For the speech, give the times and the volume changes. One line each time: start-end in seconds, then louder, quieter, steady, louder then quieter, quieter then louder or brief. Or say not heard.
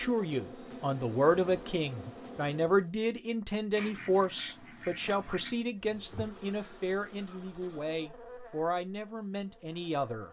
0.0-10.2 quieter.